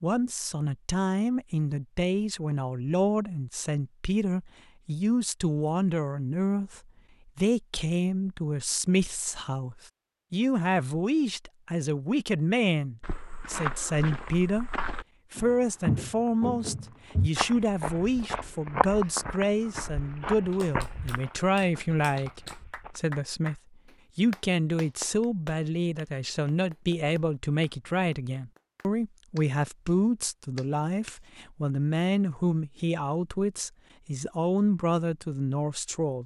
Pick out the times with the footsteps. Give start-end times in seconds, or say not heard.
13.0-23.1.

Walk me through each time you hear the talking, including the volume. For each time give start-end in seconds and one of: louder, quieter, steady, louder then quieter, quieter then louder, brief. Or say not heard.
0.0-14.7 steady
15.3-36.2 steady.